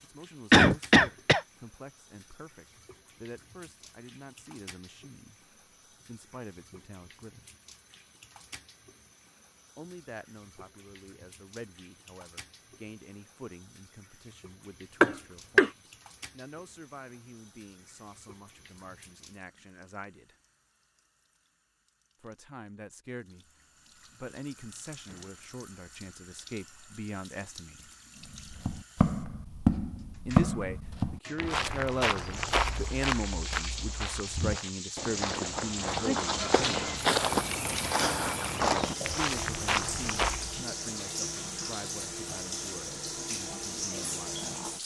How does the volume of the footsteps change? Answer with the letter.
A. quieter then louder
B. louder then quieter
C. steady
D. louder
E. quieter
A.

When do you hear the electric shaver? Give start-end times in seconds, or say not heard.
not heard.